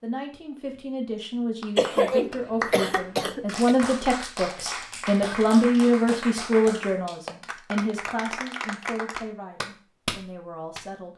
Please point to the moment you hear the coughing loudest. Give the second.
2 s.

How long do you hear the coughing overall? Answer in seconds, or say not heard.
2 s.